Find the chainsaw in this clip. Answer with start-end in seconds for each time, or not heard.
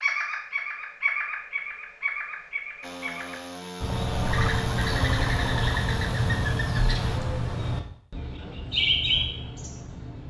2.8-7.1.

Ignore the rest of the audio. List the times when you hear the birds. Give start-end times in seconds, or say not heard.
0.0-10.2.